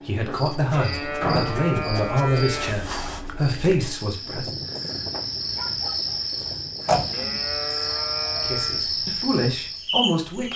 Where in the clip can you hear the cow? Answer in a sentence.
The cow can be heard from 0.7 to 2.8 s and from 7.1 to 8.8 s.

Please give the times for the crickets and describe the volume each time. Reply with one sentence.
You can hear the crickets from 0.0 to 10.5 s, getting louder.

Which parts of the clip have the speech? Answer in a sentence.
You can hear the speech from 0.0 to 4.5 s and from 8.3 to 10.5 s.